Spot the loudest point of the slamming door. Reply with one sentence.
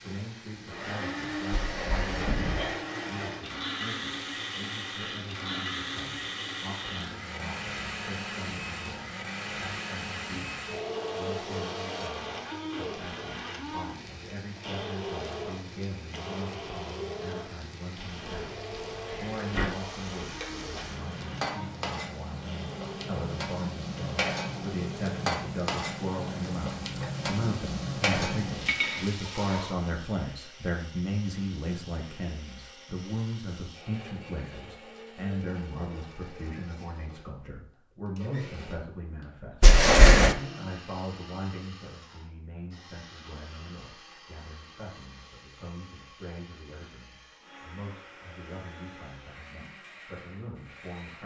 The volume of the slamming door peaks at 40 seconds.